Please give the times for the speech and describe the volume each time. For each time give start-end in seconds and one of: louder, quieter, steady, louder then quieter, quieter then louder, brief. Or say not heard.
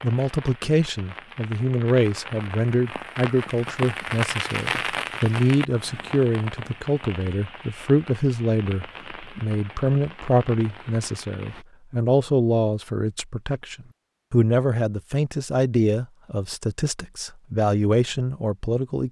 0.0-19.0 steady.